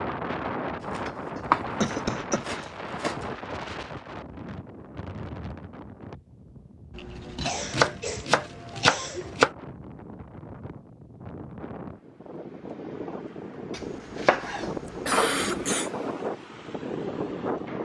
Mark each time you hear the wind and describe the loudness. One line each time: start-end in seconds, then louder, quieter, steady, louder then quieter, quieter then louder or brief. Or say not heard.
0.0-17.7 quieter then louder.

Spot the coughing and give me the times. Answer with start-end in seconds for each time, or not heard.
1.4-2.5, 7.5-9.4, 14.8-15.9.